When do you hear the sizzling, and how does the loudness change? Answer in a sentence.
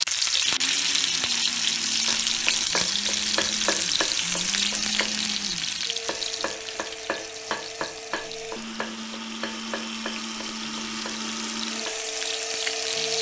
You can hear the sizzling from 0.0 to 13.1 s, getting quieter then louder.